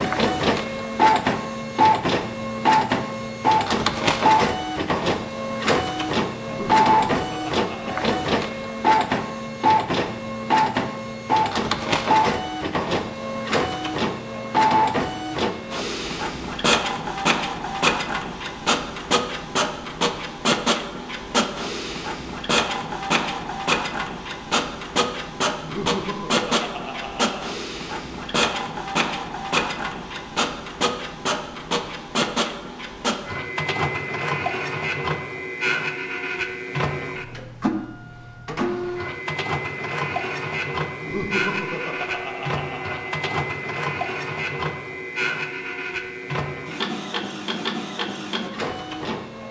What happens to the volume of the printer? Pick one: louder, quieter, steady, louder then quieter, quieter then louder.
quieter.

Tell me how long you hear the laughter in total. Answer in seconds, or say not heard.
6 s.